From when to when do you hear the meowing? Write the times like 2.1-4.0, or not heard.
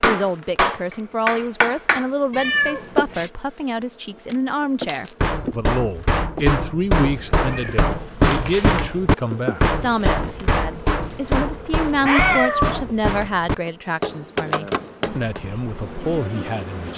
2.3-3.3, 7.5-8.9, 11.8-13.3.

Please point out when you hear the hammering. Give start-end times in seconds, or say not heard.
0.0-2.1, 4.8-15.4.